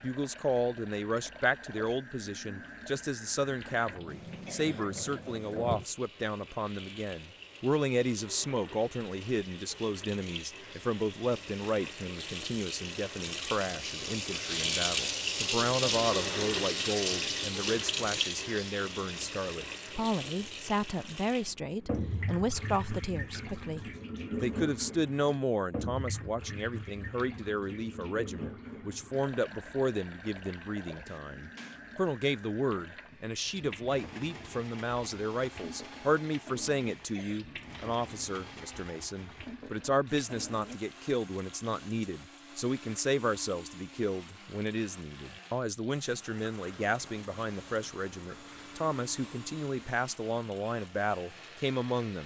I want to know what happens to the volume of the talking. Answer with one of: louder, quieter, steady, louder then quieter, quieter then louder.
steady.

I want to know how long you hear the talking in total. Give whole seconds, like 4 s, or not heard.
52 s.